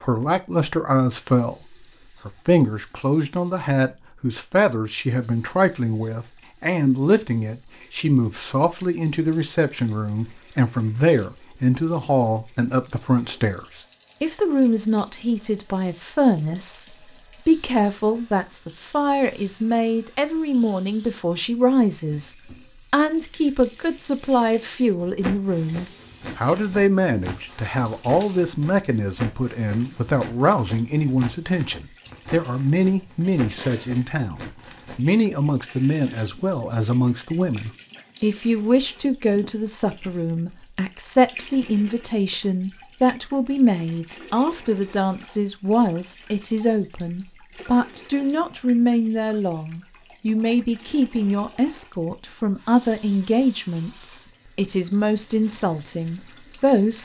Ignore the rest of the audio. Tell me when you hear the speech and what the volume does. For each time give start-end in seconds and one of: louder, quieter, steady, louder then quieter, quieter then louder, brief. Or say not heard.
0.0-56.9 steady.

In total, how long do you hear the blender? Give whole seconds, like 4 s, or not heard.
not heard.